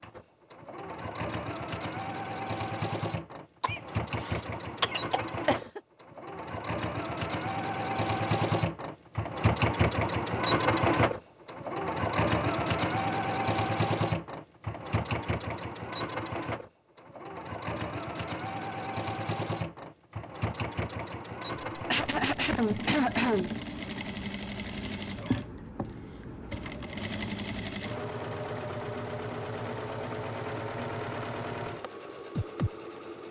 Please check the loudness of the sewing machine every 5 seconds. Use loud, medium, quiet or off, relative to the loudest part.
medium, loud, loud, medium, medium, medium, medium.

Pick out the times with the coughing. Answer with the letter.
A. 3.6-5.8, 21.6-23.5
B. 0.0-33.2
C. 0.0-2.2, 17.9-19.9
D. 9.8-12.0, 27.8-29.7
A.